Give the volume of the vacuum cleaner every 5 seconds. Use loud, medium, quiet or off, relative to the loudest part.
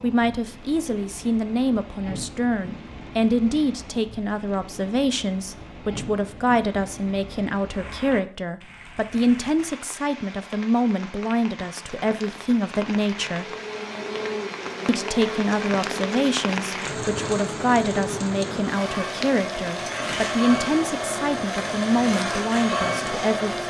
off, off, medium, medium, loud.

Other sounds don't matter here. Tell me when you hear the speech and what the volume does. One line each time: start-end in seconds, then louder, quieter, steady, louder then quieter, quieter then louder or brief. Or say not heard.
0.0-13.4 steady
14.8-23.6 steady.